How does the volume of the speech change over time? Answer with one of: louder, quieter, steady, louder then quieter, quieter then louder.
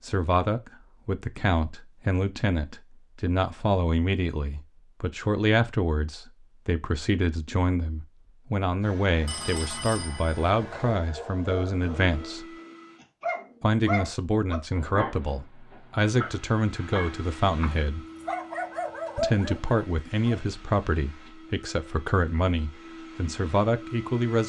steady.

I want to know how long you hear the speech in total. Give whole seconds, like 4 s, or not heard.
22 s.